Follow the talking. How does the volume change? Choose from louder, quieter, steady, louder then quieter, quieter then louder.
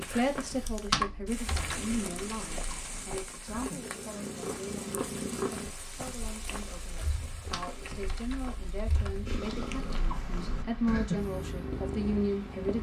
quieter then louder.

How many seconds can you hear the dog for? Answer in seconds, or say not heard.
not heard.